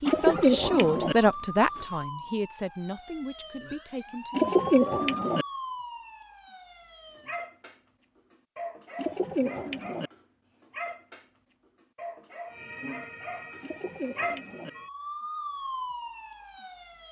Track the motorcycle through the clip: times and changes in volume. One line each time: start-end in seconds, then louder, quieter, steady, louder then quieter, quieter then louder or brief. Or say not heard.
not heard.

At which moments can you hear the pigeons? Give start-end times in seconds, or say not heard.
0.1-1.1, 4.3-5.5, 8.9-10.1, 13.6-14.7.